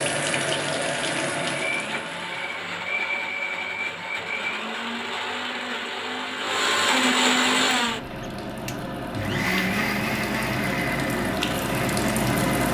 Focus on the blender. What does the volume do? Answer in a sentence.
The loudness of the blender goes up, then down.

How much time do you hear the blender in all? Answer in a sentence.
The blender can be heard for 13 seconds in total.